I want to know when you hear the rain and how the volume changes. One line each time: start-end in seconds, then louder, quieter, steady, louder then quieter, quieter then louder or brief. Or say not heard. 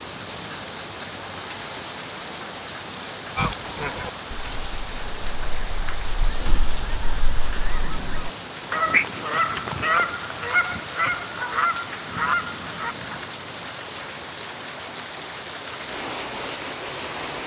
0.0-17.4 steady.